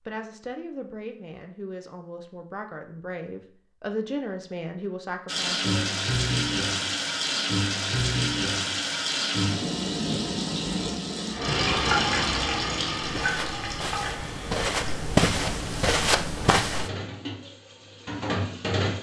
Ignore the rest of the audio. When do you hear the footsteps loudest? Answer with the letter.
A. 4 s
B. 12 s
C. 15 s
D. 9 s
C.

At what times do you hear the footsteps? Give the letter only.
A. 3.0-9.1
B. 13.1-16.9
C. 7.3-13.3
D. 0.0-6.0
B.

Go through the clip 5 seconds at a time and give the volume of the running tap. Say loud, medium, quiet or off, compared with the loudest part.
off, loud, loud, medium.